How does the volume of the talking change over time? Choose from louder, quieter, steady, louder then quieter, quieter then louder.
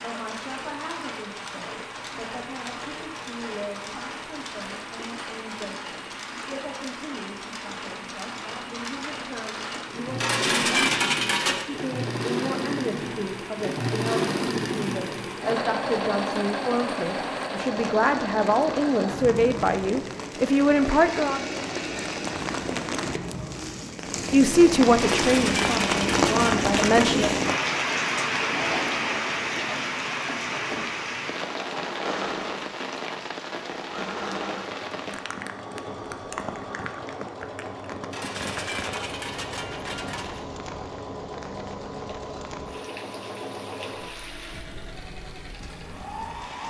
louder.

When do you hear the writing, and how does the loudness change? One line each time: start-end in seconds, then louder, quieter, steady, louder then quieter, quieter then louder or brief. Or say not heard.
not heard.